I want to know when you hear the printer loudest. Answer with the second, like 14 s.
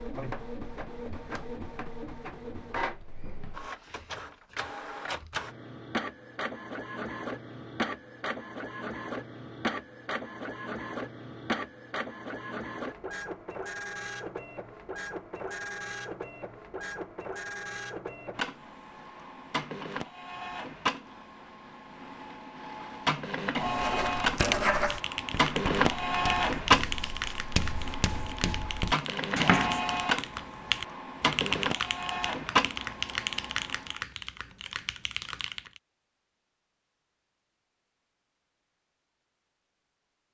26 s.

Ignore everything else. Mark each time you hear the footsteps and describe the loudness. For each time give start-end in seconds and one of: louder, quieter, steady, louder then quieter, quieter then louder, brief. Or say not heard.
not heard.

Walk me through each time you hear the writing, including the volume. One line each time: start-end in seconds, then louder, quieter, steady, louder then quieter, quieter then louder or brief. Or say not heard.
23.6-29.8 quieter then louder.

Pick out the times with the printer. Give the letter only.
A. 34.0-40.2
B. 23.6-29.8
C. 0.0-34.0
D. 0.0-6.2
C.